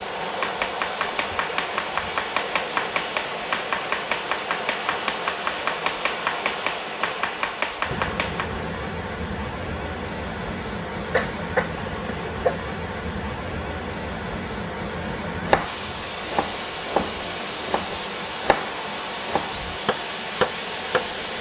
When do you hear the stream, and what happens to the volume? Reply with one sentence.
The stream can be heard from 0.0 to 21.3 s, at a steady volume.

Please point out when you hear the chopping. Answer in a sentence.
You can hear the chopping from 0.2 to 8.6 s and from 15.3 to 21.1 s.